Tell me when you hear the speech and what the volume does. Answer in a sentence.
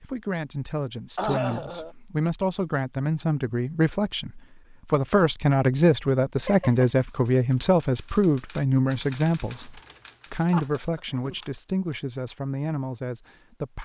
The speech can be heard from 0.0 to 13.7 s, getting louder then quieter.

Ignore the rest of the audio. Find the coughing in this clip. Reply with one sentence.
You can hear the coughing from 1.1 to 1.9 s, from 6.4 to 7.0 s and from 10.5 to 11.4 s.